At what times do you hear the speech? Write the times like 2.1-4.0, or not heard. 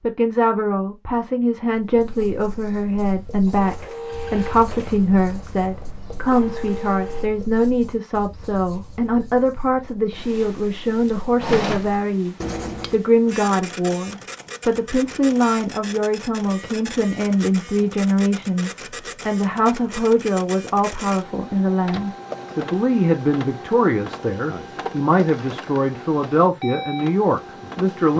0.0-28.1.